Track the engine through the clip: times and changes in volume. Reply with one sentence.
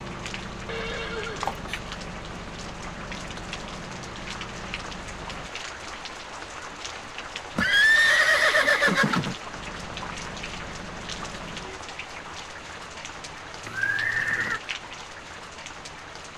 The engine can be heard from 0.0 to 5.5 s, at a steady volume; and briefly from 9.4 to 11.8 s.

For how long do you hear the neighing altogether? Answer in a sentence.
You can hear the neighing for 4 seconds altogether.